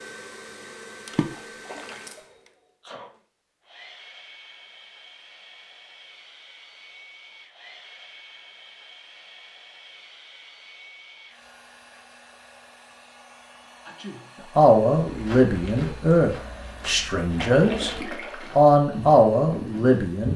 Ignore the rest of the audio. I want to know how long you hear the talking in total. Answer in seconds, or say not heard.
5 s.